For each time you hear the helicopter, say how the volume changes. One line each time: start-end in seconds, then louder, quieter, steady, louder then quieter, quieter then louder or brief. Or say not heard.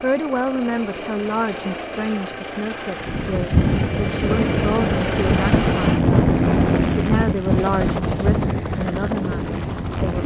0.0-10.2 louder then quieter.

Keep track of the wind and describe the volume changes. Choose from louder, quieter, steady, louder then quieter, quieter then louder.
quieter.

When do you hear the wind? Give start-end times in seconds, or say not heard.
3.0-10.2.